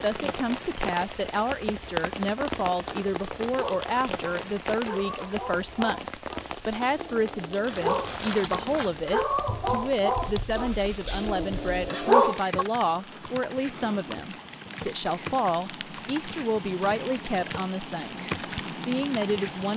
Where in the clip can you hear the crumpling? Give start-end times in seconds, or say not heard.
7.7-9.1.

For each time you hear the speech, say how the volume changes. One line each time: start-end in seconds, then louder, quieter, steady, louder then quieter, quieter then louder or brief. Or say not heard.
0.0-19.7 steady.